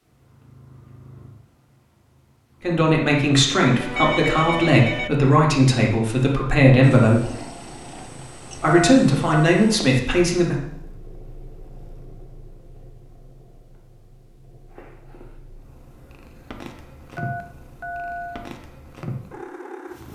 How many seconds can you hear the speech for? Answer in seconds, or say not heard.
7 s.